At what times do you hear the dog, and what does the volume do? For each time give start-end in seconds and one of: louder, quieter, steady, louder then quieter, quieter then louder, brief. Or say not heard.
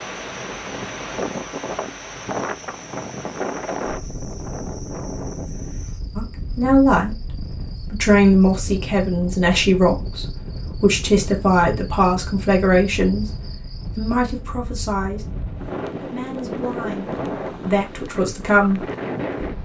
not heard.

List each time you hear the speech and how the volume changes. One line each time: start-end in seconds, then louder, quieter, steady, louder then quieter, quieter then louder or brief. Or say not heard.
6.2-15.2 quieter
16.0-18.9 brief.